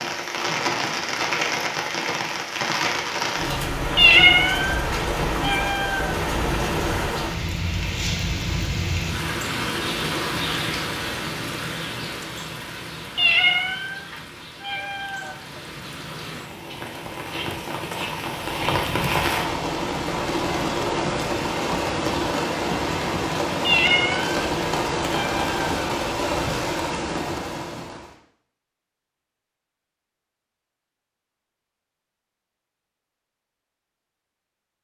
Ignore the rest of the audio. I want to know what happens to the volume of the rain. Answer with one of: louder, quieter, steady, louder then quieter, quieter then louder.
quieter then louder.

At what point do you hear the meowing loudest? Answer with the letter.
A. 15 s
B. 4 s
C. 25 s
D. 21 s
B.